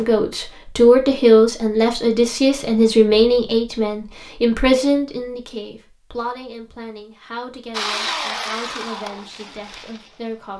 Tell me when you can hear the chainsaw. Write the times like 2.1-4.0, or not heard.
7.7-10.5.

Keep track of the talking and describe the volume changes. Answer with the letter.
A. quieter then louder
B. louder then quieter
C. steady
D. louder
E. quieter
E.